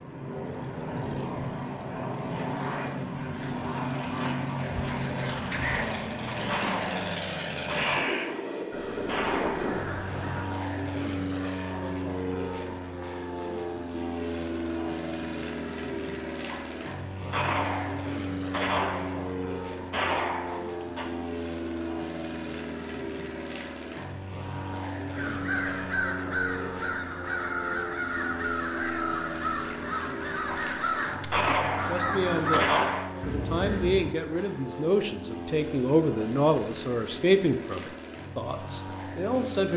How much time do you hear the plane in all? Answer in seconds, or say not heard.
40 s.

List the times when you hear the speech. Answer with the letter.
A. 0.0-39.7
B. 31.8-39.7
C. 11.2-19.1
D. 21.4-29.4
B.